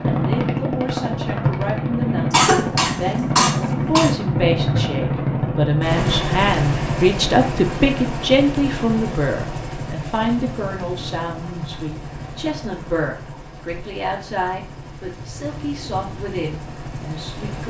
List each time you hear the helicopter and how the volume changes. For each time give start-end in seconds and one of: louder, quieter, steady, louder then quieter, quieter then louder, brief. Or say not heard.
0.0-17.6 quieter.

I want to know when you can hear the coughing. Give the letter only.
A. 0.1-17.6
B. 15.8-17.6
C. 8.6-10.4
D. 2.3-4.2
D.